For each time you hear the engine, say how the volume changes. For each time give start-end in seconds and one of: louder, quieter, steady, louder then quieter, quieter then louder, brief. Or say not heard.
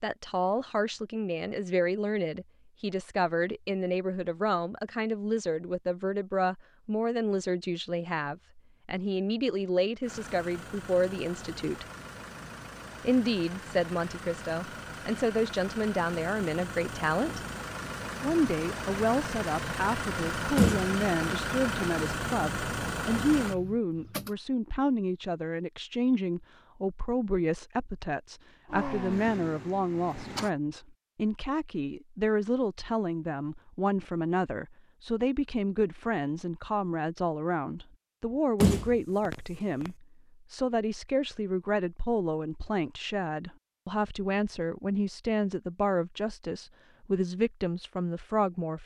10.0-24.4 louder
28.6-30.5 brief.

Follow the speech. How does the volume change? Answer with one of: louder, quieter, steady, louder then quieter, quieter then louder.
steady.